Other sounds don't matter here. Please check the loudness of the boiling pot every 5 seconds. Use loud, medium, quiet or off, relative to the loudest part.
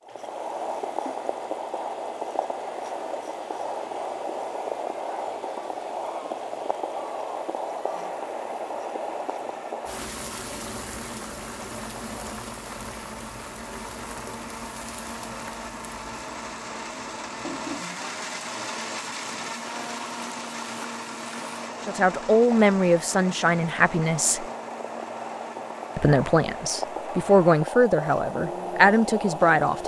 loud, loud, medium, medium, medium, loud.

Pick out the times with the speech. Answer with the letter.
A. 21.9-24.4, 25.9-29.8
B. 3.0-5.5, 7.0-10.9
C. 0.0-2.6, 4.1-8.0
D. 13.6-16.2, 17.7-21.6
A.